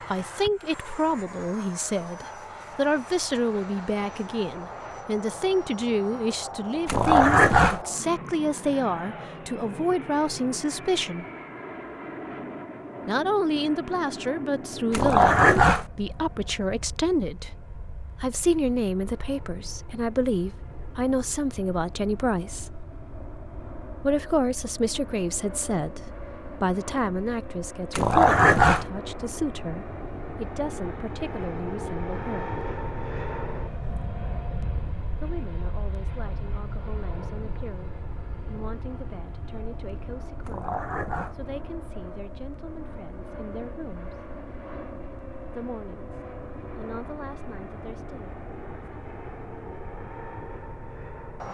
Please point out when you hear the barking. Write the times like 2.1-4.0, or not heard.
6.8-7.8, 14.9-15.8, 27.9-28.9, 40.5-41.4.